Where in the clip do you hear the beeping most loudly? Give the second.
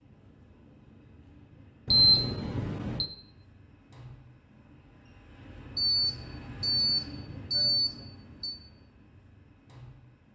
2 s.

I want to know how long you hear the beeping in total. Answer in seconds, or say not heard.
4 s.